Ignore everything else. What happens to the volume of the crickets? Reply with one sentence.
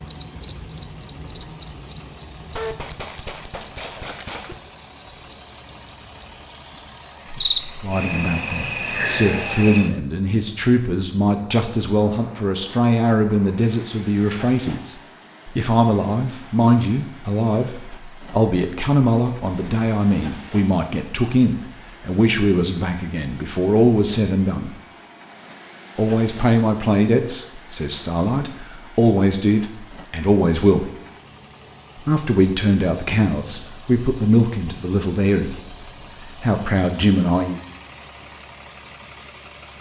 The volume of the crickets goes down, then up.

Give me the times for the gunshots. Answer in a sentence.
You can hear the gunshots from 2.5 to 4.5 s.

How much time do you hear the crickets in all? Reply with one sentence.
The crickets can be heard for 40 seconds in total.